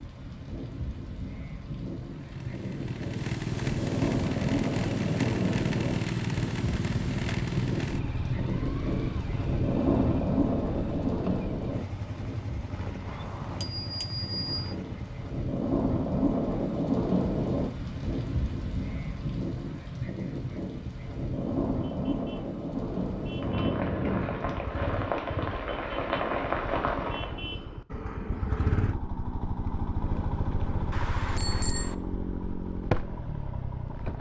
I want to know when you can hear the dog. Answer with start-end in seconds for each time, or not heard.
not heard.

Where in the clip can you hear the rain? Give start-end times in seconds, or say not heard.
0.0-27.3.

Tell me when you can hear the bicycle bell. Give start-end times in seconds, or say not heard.
13.1-14.8, 30.9-31.9.